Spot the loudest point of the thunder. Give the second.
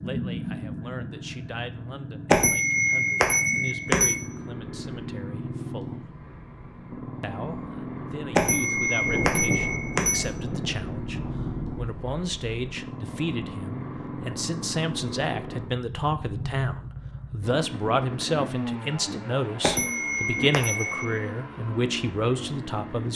9 s.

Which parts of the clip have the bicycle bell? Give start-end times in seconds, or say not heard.
2.3-4.2, 8.3-10.2, 19.6-21.2.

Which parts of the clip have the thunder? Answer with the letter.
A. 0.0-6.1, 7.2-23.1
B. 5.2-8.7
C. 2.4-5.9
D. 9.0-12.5
D.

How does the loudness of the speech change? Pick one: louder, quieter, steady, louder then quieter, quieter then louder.
louder.